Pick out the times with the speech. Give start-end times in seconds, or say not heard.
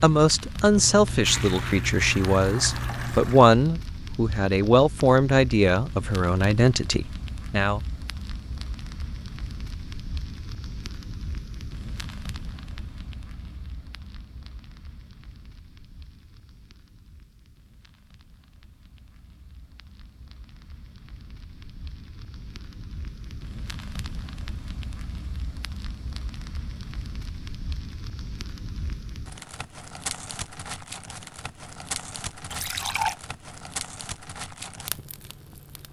0.0-7.8.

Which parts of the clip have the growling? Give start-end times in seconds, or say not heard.
not heard.